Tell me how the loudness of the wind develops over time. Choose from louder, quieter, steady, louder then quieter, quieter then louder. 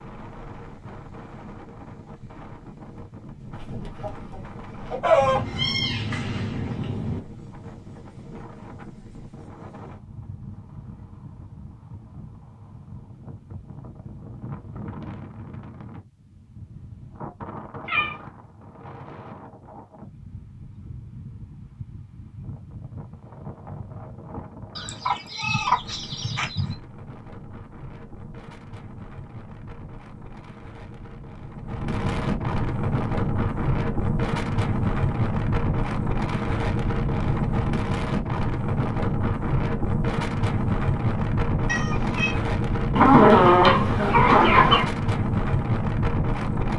louder.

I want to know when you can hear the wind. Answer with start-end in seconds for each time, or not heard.
0.0-46.7.